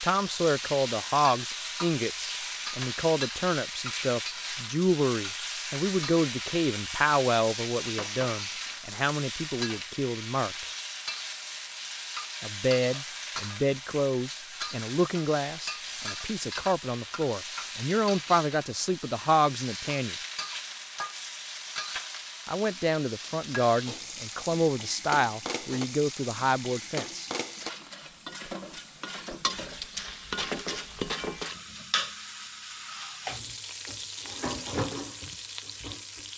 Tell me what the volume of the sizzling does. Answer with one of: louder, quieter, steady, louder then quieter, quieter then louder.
steady.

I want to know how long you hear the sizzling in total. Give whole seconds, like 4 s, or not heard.
36 s.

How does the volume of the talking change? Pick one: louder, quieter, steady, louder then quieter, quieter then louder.
steady.